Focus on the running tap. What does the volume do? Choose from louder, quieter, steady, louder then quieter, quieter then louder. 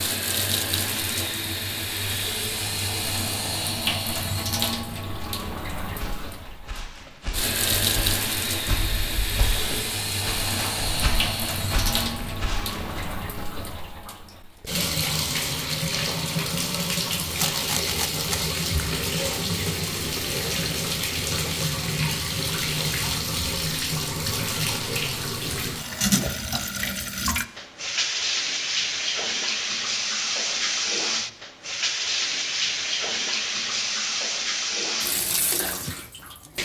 steady.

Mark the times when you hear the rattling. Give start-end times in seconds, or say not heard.
17.3-18.4.